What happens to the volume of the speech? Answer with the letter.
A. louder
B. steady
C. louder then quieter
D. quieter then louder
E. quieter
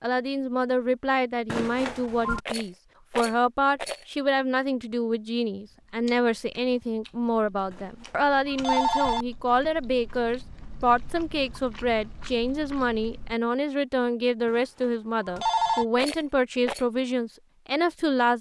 B.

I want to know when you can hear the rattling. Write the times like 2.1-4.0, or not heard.
2.4-4.0, 15.9-16.9.